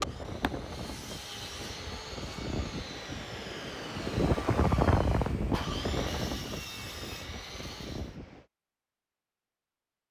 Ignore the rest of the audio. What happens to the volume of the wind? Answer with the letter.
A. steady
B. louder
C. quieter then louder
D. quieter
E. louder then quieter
E.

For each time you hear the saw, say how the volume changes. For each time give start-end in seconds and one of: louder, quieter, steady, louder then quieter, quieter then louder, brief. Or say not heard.
0.0-8.2 steady.